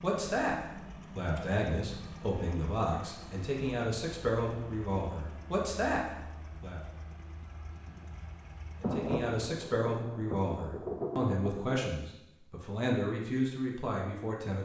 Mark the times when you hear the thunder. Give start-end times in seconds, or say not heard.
8.8-11.9.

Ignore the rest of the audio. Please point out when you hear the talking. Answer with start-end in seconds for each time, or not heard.
0.0-0.6, 1.1-6.8, 8.8-14.6.